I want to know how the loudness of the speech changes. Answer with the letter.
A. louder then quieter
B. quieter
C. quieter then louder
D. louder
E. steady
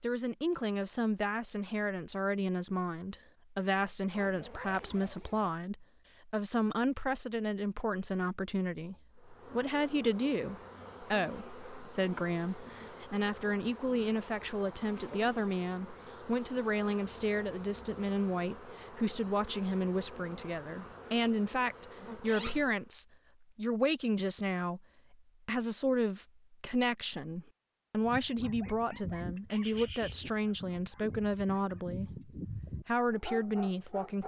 E.